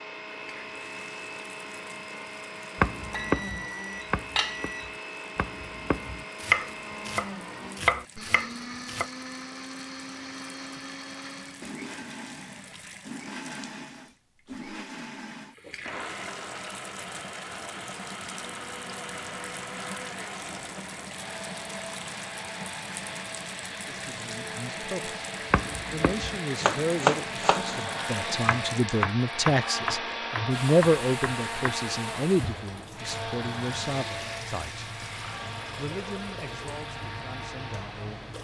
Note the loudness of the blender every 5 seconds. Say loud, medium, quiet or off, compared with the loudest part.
medium, medium, medium, medium, medium, loud, loud, medium.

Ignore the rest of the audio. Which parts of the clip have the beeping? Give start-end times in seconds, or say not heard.
3.1-4.9.